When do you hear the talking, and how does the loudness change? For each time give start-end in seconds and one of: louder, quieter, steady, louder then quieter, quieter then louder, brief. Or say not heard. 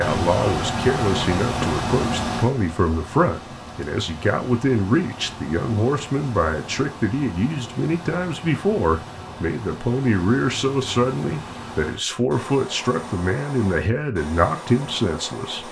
0.0-15.6 steady.